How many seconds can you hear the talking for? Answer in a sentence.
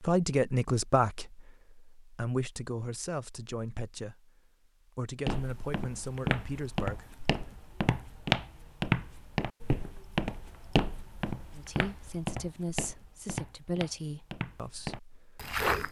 The talking can be heard for 11 seconds in total.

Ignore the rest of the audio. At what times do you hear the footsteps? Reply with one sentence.
You can hear the footsteps from 5.2 to 15.8 s.